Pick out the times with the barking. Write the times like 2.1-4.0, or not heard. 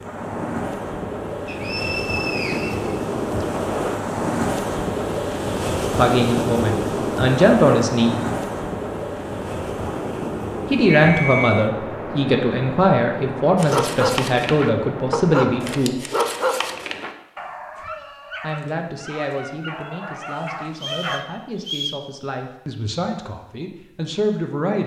13.6-21.2.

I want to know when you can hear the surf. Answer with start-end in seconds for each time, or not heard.
0.0-15.8.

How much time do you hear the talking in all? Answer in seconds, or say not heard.
14 s.